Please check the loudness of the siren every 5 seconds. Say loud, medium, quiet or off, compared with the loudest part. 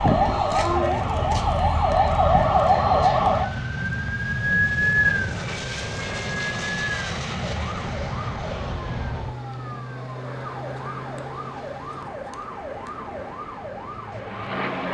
loud, medium, quiet.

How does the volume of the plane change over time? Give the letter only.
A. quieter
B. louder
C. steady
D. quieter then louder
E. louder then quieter
A.